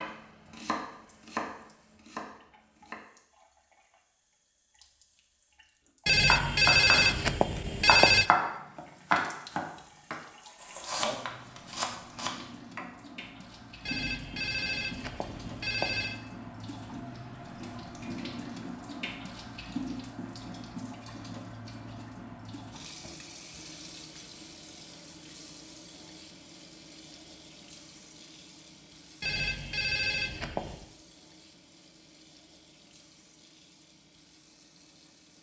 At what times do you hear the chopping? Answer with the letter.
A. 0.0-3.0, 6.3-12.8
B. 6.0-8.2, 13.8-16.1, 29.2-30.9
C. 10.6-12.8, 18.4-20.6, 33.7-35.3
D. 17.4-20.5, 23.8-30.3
A.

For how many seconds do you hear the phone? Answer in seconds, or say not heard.
6 s.